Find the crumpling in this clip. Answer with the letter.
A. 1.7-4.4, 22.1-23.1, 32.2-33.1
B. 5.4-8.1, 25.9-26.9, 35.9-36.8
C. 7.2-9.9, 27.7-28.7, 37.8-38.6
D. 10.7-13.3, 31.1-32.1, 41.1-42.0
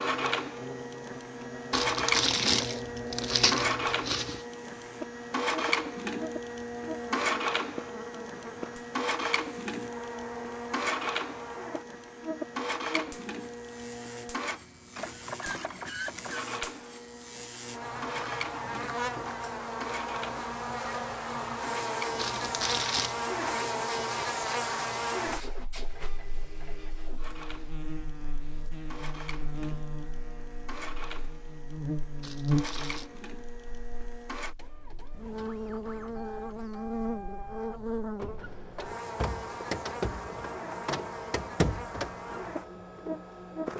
A.